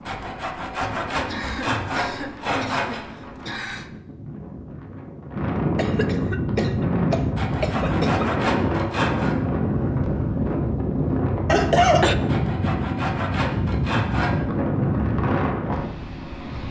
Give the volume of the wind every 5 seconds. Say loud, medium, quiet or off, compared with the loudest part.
quiet, loud, loud, loud.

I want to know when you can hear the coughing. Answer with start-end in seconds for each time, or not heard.
1.2-4.0, 5.8-8.2, 11.4-12.2.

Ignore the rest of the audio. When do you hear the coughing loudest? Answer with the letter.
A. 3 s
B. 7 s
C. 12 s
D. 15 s
C.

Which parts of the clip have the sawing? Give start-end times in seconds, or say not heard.
0.1-3.0, 7.3-9.3, 12.2-14.3.